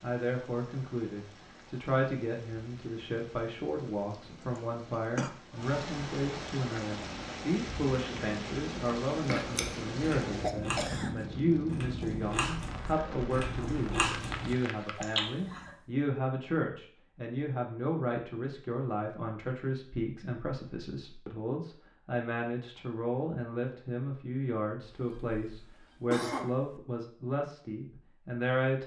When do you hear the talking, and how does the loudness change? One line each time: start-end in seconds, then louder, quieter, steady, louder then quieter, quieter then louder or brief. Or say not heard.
0.0-28.8 steady.